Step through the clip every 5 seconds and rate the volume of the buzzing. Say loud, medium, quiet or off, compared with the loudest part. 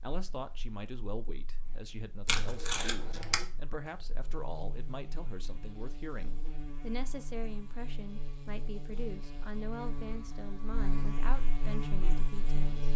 quiet, medium, loud.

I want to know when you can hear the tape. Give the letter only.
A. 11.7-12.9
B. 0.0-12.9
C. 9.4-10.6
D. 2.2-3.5
D.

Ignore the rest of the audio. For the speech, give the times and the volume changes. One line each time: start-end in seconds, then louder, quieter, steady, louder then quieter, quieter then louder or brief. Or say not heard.
0.0-12.9 steady.